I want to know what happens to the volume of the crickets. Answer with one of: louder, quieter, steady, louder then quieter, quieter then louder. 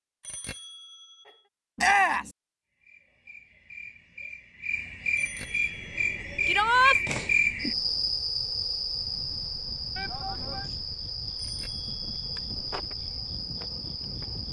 louder then quieter.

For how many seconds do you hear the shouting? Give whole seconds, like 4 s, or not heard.
2 s.